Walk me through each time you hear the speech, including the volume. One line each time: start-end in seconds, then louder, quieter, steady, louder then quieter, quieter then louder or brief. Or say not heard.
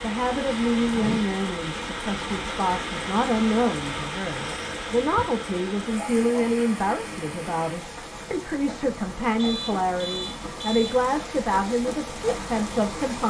0.0-13.2 steady.